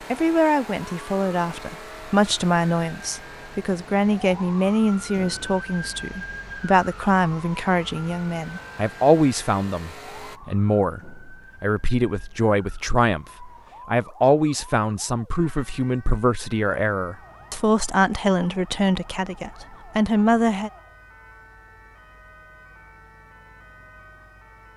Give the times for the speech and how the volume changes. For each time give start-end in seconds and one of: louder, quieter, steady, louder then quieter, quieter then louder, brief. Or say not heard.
0.1-20.7 steady.